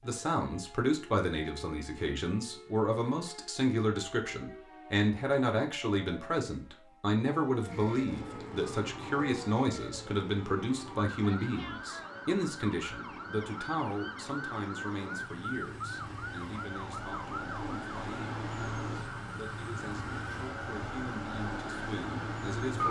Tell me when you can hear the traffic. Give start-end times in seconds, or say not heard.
7.7-22.8.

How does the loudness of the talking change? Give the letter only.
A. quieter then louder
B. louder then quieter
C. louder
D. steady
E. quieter
E.